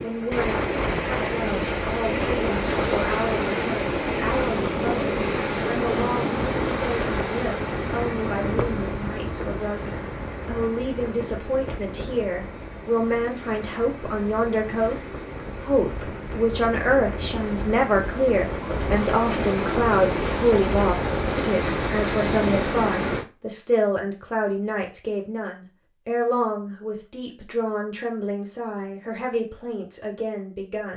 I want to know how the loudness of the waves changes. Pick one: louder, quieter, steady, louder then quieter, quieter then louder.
quieter then louder.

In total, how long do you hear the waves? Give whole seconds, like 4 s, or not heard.
23 s.